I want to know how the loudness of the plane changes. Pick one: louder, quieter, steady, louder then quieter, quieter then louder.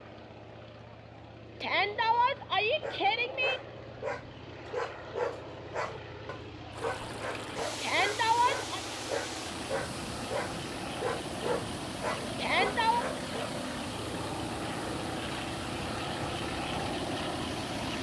louder.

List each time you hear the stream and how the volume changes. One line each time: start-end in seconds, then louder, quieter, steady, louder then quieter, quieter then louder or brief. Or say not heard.
6.7-17.9 steady.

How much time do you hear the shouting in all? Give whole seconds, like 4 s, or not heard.
4 s.